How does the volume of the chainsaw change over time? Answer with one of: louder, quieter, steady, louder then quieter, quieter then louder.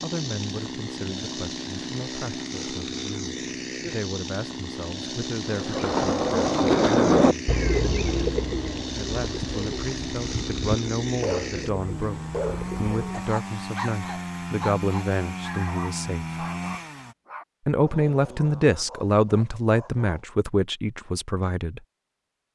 steady.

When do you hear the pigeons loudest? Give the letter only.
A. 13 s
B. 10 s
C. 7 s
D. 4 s
C.